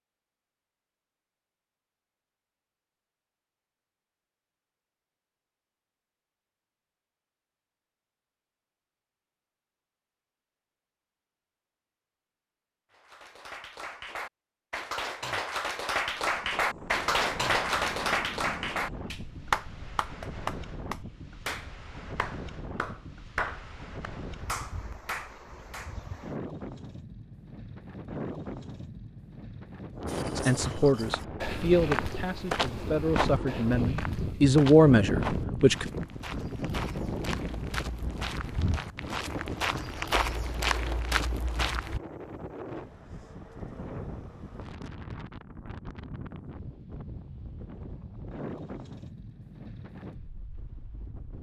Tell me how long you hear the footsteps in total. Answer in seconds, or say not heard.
12 s.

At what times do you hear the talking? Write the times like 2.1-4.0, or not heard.
30.4-35.9.